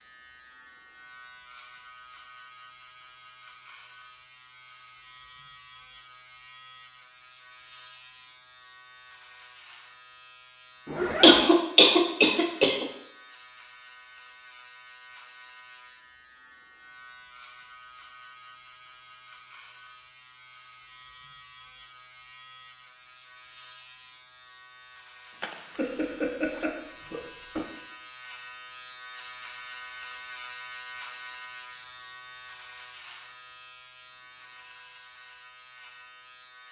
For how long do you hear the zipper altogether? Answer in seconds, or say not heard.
2 s.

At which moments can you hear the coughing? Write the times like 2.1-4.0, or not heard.
11.2-12.8, 25.8-27.6.